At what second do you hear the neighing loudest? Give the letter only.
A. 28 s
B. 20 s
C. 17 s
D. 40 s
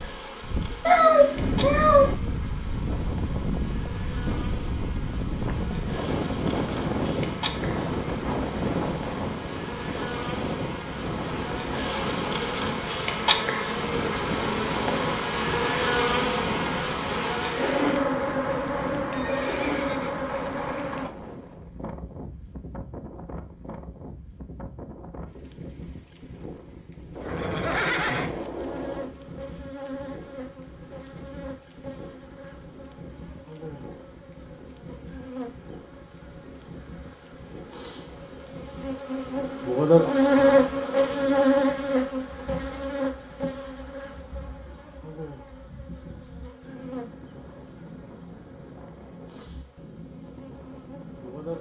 A.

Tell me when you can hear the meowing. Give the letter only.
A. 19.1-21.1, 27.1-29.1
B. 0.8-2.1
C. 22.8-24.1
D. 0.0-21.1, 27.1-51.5
B.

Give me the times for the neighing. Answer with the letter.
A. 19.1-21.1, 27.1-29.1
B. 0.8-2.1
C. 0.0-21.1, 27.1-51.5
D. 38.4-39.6
A.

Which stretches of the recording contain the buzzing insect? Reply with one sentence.
You can hear the buzzing insect from 0.0 to 21.1 s and from 27.1 to 51.5 s.